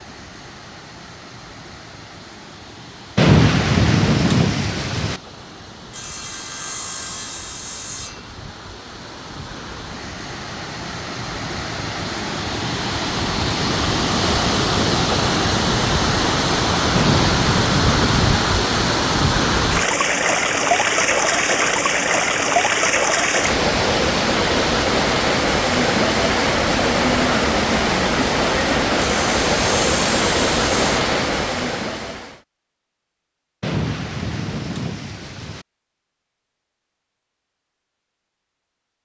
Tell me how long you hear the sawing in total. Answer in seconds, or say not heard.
4 s.